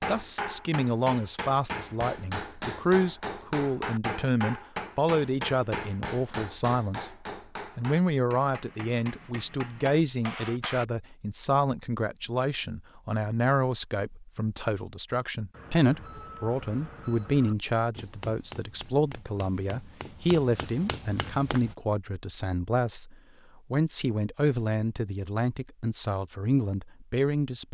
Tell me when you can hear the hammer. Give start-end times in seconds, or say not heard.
0.0-10.8, 17.9-21.8.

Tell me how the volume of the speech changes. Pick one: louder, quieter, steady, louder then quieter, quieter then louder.
steady.